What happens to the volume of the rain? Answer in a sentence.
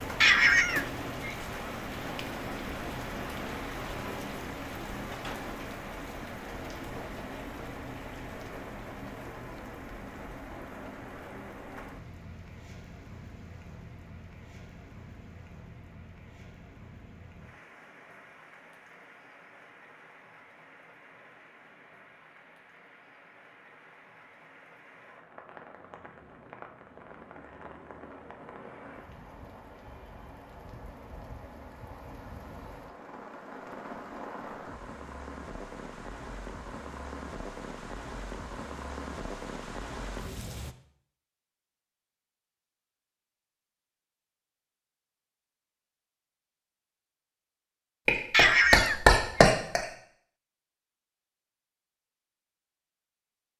The volume of the rain goes down, then up.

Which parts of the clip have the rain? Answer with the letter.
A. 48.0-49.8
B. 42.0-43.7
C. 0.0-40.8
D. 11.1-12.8
C.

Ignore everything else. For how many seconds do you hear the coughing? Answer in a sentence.
The coughing can be heard for 2 seconds in total.